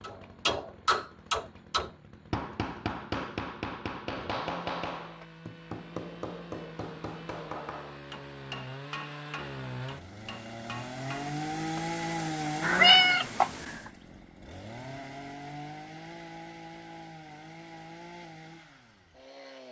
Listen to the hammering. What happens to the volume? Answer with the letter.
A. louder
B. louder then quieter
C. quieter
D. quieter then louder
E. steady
C.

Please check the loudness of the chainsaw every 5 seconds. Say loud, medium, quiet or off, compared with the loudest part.
quiet, medium, loud, medium.